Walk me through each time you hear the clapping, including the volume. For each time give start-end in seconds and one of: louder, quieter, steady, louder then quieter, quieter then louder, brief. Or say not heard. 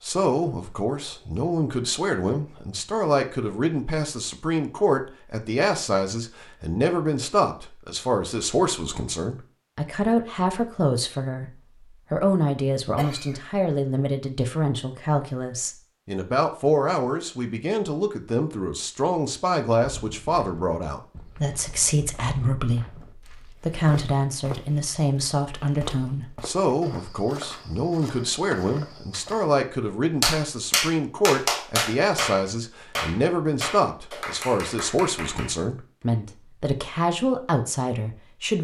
30.2-35.6 quieter.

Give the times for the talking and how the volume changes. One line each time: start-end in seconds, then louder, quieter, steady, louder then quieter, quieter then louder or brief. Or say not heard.
0.0-11.5 steady
12.1-38.6 steady.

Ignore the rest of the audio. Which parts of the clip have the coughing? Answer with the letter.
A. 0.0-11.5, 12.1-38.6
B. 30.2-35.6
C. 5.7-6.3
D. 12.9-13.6
D.